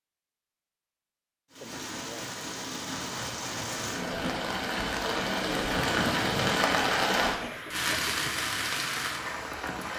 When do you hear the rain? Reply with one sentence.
The rain can be heard from 1.5 to 9.9 s.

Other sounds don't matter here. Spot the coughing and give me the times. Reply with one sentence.
The coughing can be heard from 1.6 to 2.4 s and from 7.4 to 8.3 s.